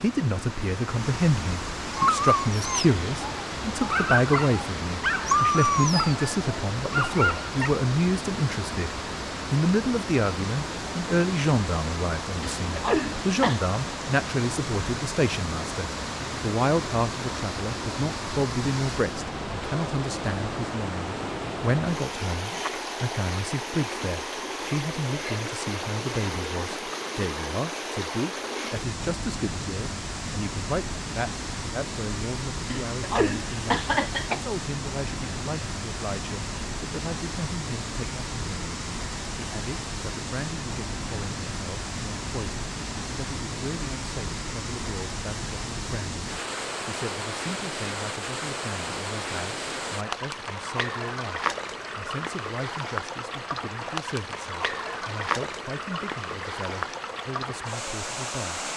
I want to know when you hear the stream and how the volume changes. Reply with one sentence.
You can hear the stream from 0.0 to 58.7 s, at a steady volume.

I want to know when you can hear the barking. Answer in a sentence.
You can hear the barking from 1.9 to 7.7 s.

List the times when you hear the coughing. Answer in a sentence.
The coughing can be heard from 12.4 to 13.6 s and from 32.7 to 34.4 s.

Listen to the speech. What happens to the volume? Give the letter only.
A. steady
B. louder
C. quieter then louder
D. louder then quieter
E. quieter
E.